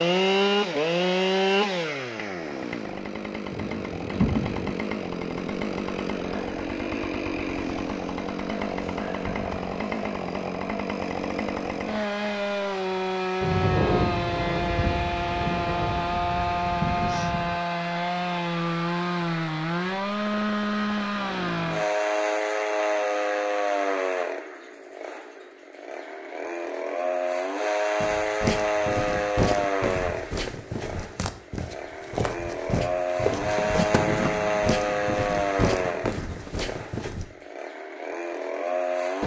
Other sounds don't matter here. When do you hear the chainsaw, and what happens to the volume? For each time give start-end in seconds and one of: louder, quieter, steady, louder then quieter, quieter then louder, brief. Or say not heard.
0.0-39.2 steady.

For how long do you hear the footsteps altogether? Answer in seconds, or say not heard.
9 s.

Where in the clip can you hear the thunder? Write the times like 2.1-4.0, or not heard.
3.5-4.8, 13.4-17.6, 33.9-36.5.